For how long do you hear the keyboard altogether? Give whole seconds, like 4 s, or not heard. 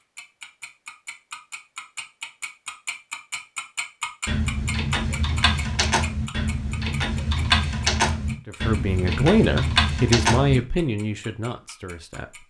6 s.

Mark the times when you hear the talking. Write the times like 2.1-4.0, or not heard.
8.4-12.4.